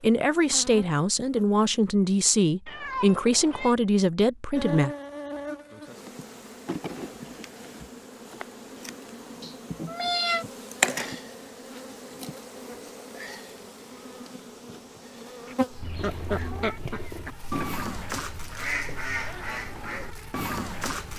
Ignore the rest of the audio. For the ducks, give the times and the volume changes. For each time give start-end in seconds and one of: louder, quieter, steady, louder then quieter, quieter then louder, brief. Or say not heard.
15.4-21.1 steady.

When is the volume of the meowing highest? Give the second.
10 s.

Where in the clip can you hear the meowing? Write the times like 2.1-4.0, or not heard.
2.6-3.8, 9.4-10.4, 15.8-16.8.